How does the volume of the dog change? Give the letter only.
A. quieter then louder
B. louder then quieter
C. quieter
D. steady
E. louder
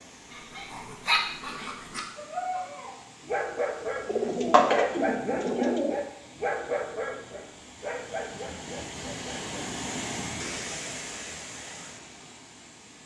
C.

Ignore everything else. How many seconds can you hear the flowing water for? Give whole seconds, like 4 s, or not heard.
13 s.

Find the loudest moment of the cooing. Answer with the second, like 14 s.
5 s.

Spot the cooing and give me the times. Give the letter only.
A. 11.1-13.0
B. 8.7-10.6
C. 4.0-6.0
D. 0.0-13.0
C.